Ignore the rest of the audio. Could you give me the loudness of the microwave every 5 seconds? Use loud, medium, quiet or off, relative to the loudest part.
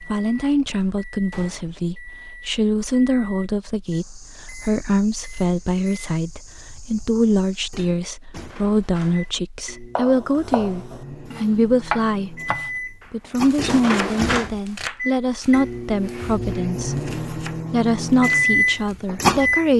quiet, quiet, medium, loud.